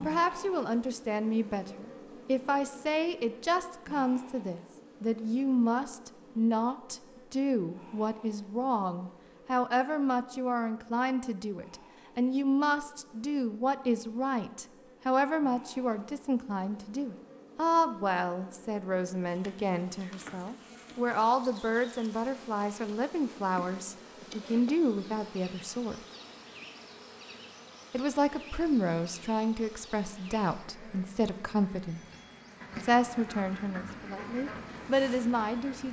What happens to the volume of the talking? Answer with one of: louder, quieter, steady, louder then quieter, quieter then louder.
steady.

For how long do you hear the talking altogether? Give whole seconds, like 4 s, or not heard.
33 s.